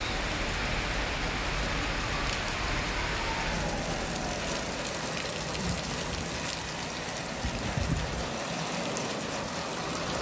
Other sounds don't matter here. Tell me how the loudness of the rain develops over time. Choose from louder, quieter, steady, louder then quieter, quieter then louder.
steady.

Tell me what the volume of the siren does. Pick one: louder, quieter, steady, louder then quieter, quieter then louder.
steady.